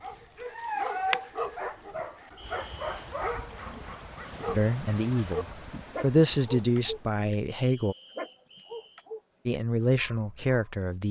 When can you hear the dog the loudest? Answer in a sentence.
The volume of the dog peaks at 1 second.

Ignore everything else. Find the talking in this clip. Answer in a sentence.
The talking can be heard from 4.5 to 8.0 s and from 9.4 to 11.0 s.